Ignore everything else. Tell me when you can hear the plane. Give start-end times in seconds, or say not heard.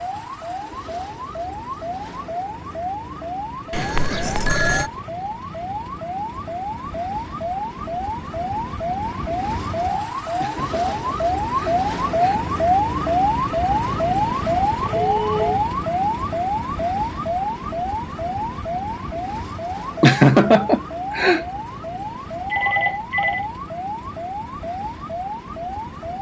not heard.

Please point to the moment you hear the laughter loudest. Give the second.
20 s.